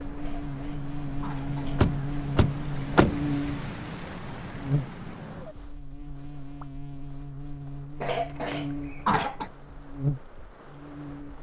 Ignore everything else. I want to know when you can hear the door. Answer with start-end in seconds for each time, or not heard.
1.8-3.3, 8.2-9.6.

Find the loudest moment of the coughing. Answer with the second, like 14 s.
9 s.